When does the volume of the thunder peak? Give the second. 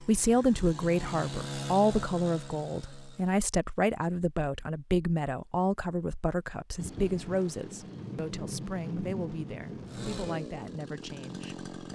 9 s.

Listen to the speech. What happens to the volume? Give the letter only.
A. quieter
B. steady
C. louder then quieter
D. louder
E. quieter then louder
A.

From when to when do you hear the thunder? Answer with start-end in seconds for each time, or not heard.
6.8-10.4.